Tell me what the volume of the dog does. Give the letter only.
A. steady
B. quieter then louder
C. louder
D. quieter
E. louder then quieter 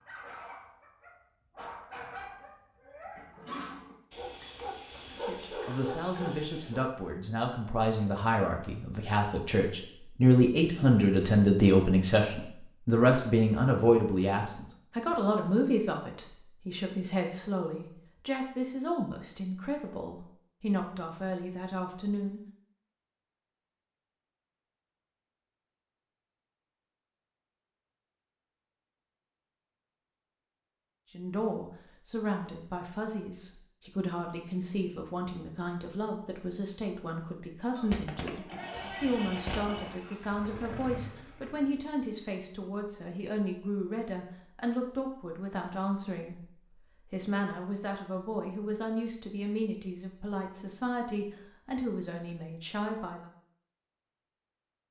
C.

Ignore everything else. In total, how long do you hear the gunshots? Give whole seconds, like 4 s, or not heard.
2 s.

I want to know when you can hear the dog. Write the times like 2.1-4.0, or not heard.
0.0-6.8.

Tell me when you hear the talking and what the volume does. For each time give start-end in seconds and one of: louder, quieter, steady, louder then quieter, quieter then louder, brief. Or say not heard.
5.1-22.4 louder then quieter
31.1-53.3 steady.